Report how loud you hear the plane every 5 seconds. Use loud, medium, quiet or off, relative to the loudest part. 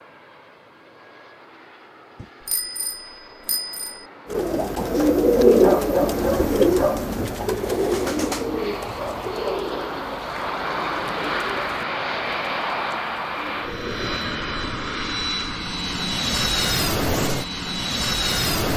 quiet, medium, loud, loud.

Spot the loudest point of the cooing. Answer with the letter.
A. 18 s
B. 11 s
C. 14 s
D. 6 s
D.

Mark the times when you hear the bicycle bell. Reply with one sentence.
You can hear the bicycle bell from 2.1 to 4.0 s.